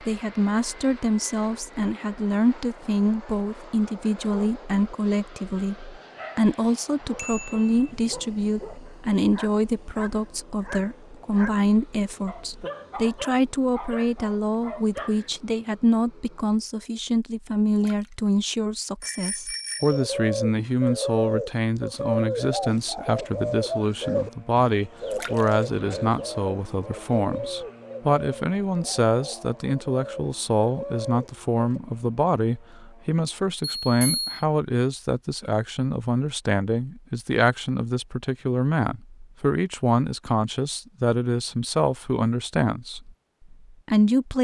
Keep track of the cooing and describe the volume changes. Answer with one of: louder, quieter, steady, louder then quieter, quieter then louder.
quieter.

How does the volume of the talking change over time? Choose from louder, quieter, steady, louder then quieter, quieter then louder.
steady.